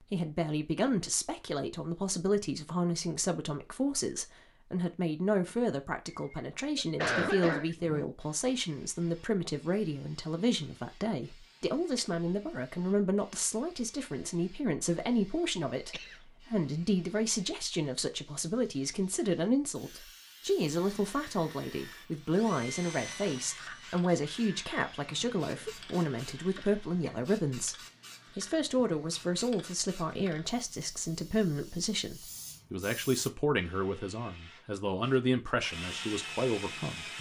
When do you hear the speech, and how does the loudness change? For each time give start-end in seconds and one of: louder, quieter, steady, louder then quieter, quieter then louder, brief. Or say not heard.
0.0-27.8 steady
28.4-37.1 steady.